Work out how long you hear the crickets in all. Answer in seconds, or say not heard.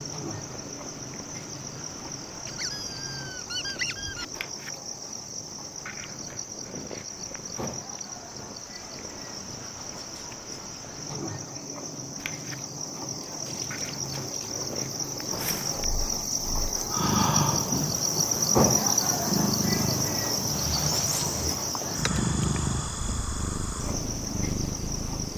25 s.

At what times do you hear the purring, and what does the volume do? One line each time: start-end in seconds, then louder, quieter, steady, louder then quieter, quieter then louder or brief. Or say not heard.
0.0-25.3 louder.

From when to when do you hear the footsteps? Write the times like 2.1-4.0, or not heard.
not heard.